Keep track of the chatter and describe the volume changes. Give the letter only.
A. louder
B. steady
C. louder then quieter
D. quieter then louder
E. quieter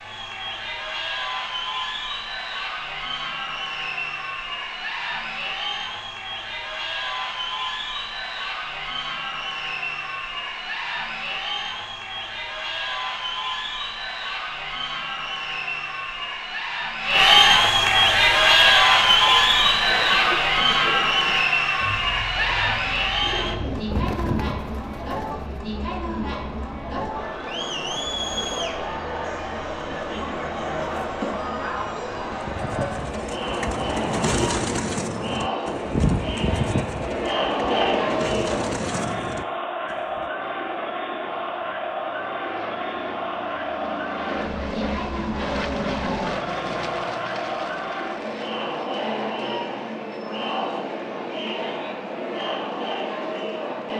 C.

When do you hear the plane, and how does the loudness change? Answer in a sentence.
The plane can be heard from 40.4 to 53.9 s, getting louder then quieter.